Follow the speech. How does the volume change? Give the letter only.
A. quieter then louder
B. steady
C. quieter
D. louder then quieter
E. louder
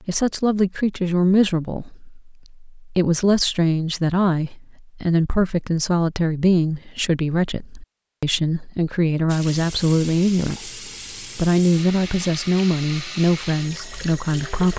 B.